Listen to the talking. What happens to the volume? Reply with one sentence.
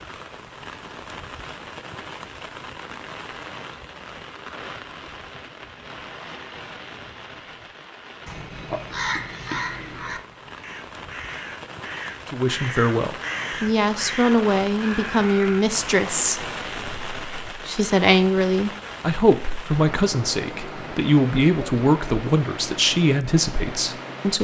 The loudness of the talking stays about the same.